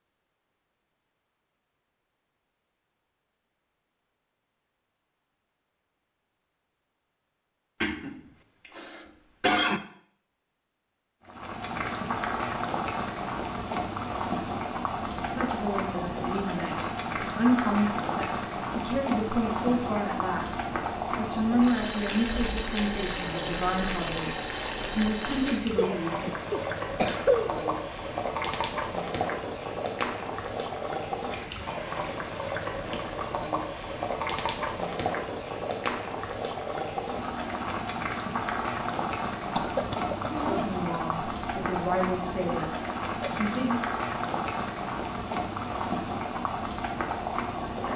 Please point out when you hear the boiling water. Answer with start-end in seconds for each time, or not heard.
11.2-47.9.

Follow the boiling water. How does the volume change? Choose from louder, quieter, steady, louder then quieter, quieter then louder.
steady.